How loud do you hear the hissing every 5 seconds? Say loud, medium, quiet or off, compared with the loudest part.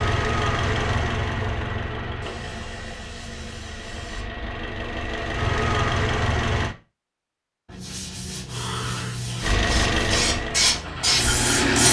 off, medium, loud.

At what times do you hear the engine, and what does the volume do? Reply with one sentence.
The engine can be heard from 0.0 to 6.8 s, getting quieter then louder; and briefly from 9.4 to 11.8 s.